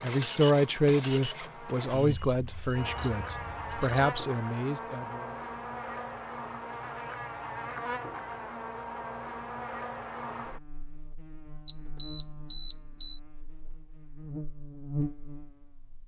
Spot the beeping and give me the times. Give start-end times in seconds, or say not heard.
2.0-4.1, 11.7-13.2.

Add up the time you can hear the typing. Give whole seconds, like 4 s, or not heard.
not heard.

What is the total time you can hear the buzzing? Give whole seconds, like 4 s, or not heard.
16 s.